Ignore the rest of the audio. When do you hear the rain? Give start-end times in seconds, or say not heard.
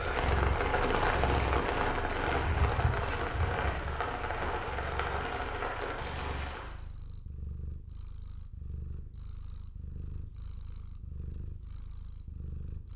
0.0-6.8.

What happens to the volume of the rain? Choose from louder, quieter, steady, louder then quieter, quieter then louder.
quieter.